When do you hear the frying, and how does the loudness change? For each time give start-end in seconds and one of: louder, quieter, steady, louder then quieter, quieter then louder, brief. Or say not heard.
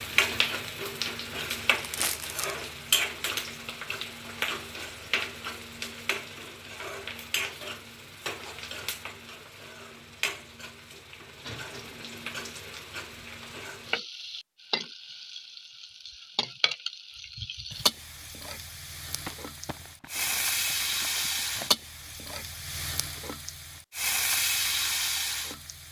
0.0-25.8 quieter then louder.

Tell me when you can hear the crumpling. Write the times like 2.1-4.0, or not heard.
1.8-2.5, 19.2-21.7.